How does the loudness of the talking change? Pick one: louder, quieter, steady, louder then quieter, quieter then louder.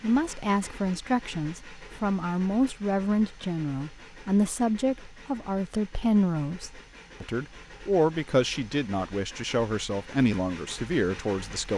steady.